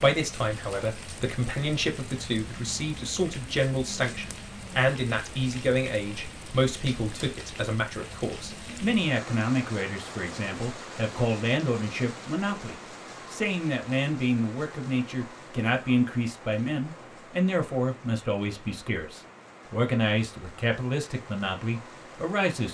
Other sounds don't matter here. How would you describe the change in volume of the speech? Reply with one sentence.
The loudness of the speech stays about the same.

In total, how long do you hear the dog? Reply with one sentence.
The dog can't be heard in this clip.